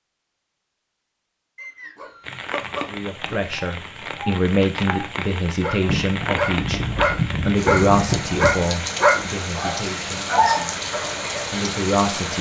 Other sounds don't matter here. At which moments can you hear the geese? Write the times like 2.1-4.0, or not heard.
5.8-8.7.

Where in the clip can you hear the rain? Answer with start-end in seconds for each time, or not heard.
2.2-12.3.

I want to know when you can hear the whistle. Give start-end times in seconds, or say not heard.
1.6-2.5.